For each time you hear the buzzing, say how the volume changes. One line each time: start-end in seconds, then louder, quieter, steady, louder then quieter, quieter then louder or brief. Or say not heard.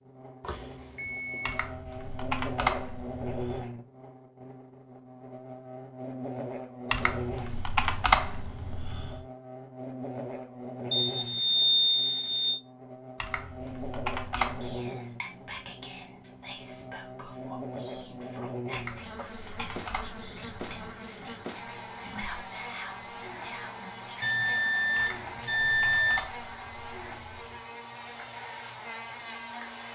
0.0-29.9 steady.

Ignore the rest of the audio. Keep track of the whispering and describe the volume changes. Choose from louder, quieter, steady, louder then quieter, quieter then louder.
steady.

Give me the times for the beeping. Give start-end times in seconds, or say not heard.
0.4-1.6, 10.9-12.6, 24.2-26.2.